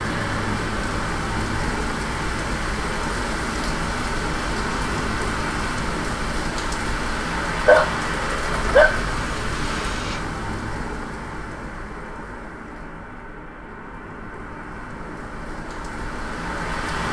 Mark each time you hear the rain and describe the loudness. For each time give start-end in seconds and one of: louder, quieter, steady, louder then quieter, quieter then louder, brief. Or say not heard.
0.0-17.0 quieter.